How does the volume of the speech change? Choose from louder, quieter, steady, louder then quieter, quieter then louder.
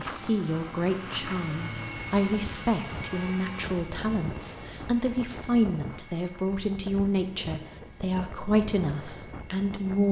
steady.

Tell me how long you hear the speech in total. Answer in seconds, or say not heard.
10 s.